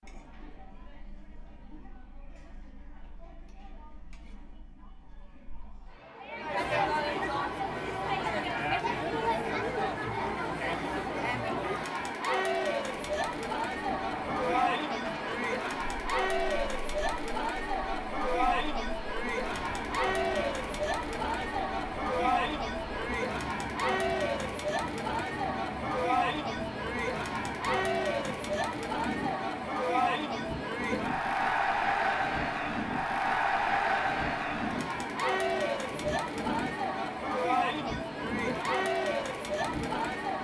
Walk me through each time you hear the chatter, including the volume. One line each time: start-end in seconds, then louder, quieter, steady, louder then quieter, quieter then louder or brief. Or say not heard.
0.0-40.3 louder.